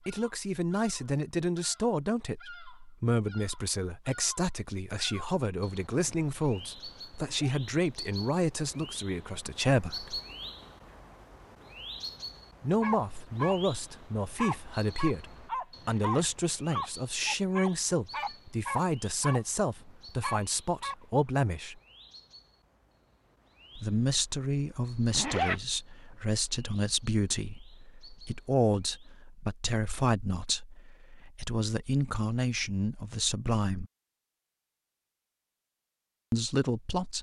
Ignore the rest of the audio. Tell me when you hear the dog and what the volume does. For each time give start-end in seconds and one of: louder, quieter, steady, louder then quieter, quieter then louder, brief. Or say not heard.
12.8-20.9 steady.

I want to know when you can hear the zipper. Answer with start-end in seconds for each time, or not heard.
7.1-7.6, 15.8-16.2, 25.1-25.6.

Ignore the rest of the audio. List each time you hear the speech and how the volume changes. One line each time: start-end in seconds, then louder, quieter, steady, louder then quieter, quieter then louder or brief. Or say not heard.
0.1-10.2 steady
12.6-21.8 steady
23.8-33.9 steady
36.3-37.1 brief.